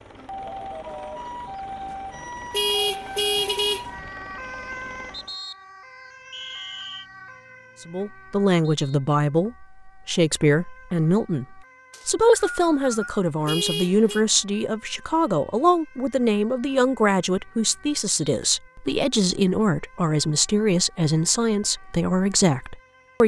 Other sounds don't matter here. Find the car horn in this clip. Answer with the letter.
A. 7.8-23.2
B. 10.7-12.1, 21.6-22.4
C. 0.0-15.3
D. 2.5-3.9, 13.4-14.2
D.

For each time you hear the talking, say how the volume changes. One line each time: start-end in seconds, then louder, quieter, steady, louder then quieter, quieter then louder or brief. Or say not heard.
7.8-23.2 steady.